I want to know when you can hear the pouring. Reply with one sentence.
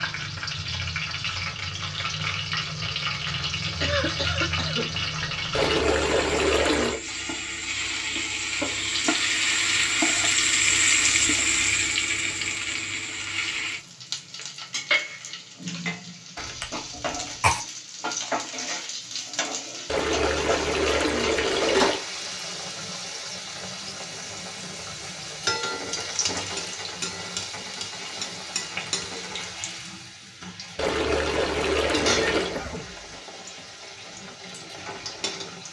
You can hear the pouring from 5.5 to 7.0 s, from 19.9 to 22.0 s and from 30.8 to 32.6 s.